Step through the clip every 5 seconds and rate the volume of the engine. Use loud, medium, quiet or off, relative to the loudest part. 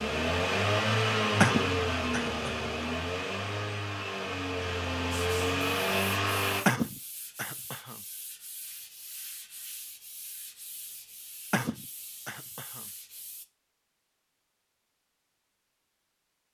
loud, loud, off, off.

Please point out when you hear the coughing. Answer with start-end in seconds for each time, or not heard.
1.4-2.7, 6.7-8.0, 11.5-12.8.